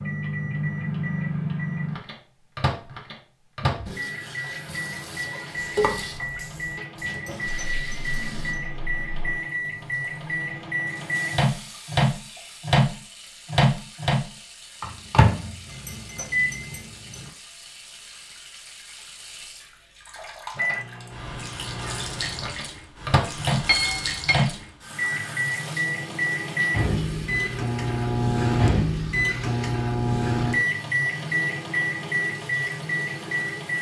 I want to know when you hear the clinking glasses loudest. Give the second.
24 s.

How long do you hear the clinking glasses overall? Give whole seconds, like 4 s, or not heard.
4 s.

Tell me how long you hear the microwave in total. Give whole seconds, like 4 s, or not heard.
30 s.